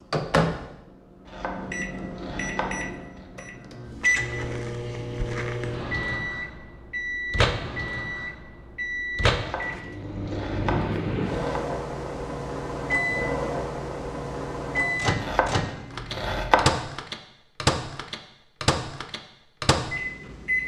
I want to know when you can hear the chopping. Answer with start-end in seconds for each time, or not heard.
1.2-3.2, 9.3-11.7, 15.2-16.8.